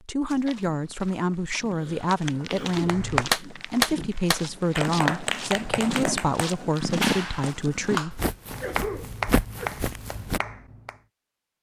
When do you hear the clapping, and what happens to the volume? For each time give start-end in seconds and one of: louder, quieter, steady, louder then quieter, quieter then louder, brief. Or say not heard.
2.8-11.0 quieter.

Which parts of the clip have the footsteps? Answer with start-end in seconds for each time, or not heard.
0.2-10.4.